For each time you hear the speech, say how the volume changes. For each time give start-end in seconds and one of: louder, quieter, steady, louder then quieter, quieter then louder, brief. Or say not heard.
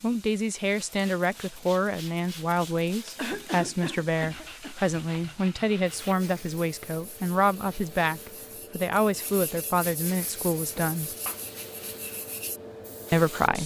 0.0-11.1 steady
13.1-13.6 brief.